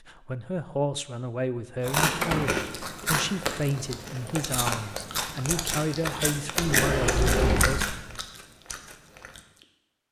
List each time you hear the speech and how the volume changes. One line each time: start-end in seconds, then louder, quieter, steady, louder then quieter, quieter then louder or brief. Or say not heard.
0.0-8.2 steady.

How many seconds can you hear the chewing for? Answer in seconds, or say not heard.
8 s.